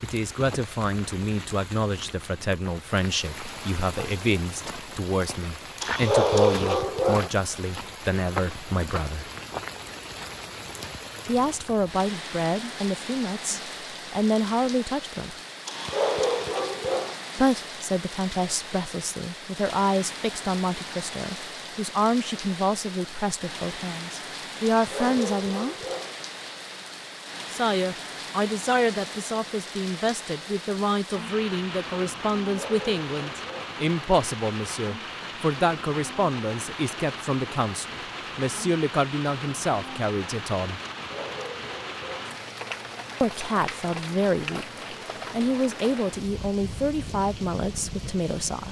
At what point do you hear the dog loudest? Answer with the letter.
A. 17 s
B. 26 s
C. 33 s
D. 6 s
D.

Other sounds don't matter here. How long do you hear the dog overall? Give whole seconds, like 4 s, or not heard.
7 s.